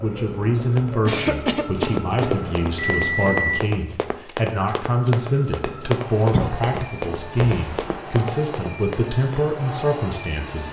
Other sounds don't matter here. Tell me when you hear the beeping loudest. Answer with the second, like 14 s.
3 s.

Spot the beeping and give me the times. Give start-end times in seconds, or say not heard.
2.3-3.6, 7.3-8.0.